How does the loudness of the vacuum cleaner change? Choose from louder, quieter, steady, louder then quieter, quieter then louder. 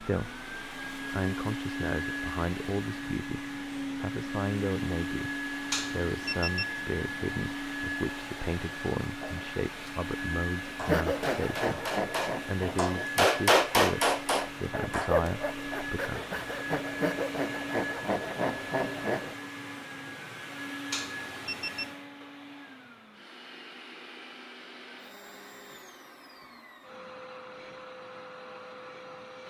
quieter.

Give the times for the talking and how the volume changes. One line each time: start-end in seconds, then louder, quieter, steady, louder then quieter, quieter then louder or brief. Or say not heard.
0.0-16.2 steady.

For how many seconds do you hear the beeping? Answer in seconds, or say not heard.
2 s.